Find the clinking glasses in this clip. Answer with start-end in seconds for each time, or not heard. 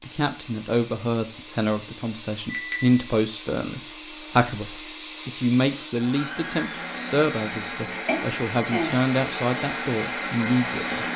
2.5-3.0, 8.1-9.0.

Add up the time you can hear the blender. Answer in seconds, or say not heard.
11 s.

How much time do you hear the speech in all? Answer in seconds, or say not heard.
11 s.